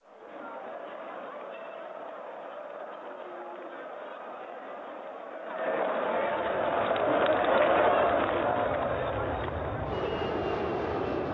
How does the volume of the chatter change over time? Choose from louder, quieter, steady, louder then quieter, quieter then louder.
louder then quieter.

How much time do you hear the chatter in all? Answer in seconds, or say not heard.
11 s.